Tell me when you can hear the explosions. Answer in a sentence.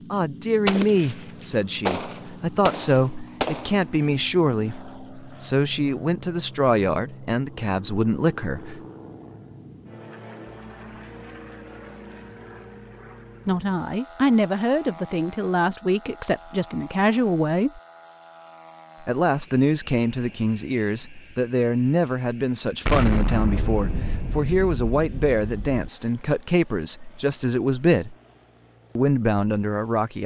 You can hear the explosions from 0.7 to 1.1 s, from 1.9 to 3.7 s and from 22.9 to 25.9 s.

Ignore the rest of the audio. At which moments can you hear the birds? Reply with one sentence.
You can't hear the birds here.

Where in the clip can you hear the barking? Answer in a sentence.
The barking can't be heard in this clip.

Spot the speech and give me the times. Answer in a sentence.
The speech can be heard from 0.1 to 8.8 s, from 13.4 to 17.8 s, from 19.0 to 28.1 s and from 28.9 to 30.2 s.